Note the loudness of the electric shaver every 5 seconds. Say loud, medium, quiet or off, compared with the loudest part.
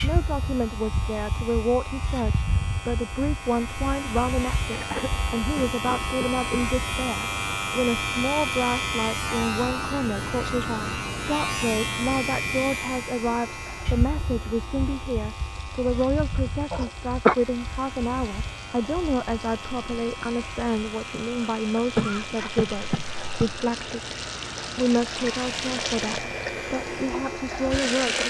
medium, loud, loud, medium, medium, medium.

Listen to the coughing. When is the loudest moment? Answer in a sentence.
The volume of the coughing peaks at 17 seconds.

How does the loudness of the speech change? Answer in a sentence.
The volume of the speech stays about the same.